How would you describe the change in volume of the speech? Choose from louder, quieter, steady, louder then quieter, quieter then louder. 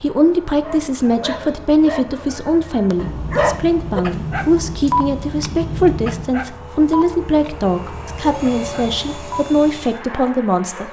steady.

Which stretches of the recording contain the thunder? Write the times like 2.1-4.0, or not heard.
3.0-6.3.